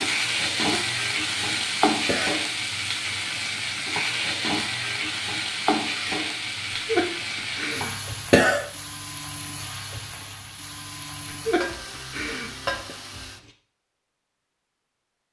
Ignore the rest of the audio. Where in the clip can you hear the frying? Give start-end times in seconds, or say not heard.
0.0-13.6.